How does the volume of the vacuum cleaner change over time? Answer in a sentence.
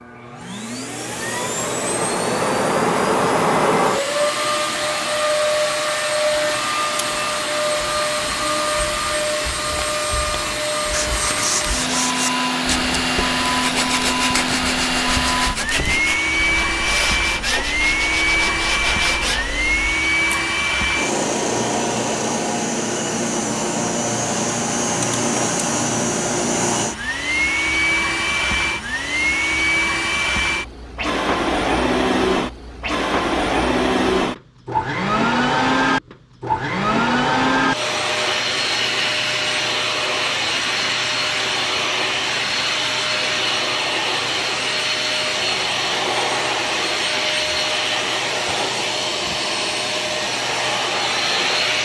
The loudness of the vacuum cleaner stays about the same.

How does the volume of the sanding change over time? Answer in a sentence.
The loudness of the sanding stays about the same.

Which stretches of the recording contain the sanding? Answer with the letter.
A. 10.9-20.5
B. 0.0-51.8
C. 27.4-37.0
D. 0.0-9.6
A.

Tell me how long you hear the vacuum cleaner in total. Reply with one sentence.
You can hear the vacuum cleaner for 52 seconds altogether.